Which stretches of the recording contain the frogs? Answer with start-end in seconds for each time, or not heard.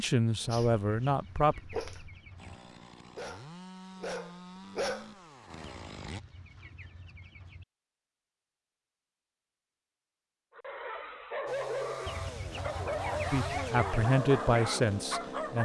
not heard.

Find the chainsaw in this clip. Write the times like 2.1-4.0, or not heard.
2.4-6.2, 11.4-15.6.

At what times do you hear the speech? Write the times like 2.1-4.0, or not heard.
0.0-1.6, 13.3-15.6.